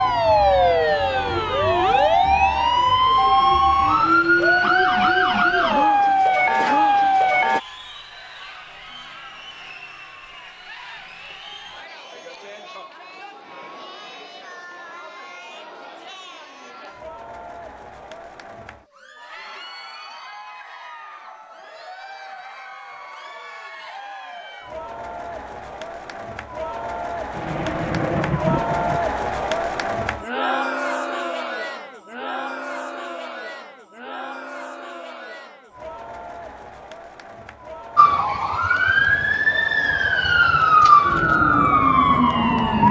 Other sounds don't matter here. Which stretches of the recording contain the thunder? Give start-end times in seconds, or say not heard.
27.3-29.0.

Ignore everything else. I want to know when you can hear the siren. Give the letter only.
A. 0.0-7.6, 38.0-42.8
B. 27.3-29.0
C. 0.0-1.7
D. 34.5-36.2
A.